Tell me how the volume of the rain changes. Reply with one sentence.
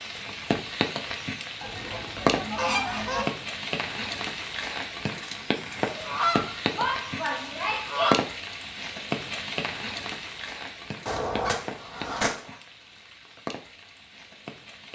The loudness of the rain goes down.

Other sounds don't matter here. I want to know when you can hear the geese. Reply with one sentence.
The geese can be heard from 1.6 to 3.2 s, from 5.8 to 8.2 s and from 11.1 to 12.6 s.